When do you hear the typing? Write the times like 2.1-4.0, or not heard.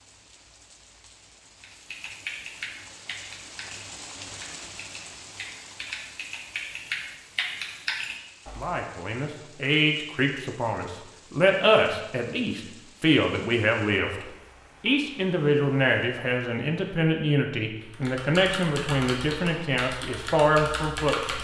1.6-8.8, 17.9-21.3.